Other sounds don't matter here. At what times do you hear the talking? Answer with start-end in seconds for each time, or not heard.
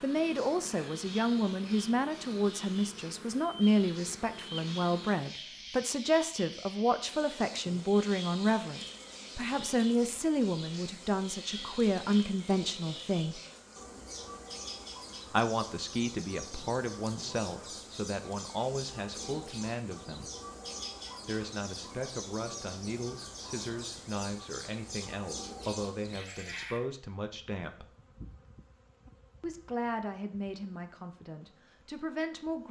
0.0-13.4, 15.3-20.3, 21.2-27.9, 29.4-32.6.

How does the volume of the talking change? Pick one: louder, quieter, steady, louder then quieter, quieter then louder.
quieter.